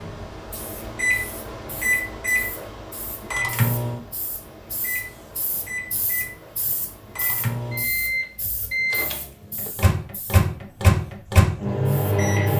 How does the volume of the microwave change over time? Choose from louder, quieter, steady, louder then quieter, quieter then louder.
quieter then louder.